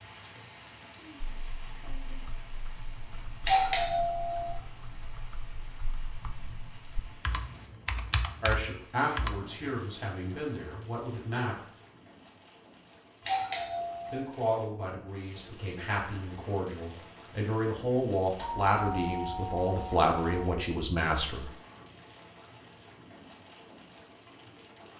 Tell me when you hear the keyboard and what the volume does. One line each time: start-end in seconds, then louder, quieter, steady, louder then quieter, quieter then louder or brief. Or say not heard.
1.2-9.7 louder.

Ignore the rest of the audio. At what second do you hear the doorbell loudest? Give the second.
4 s.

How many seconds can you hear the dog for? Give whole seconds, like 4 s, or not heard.
not heard.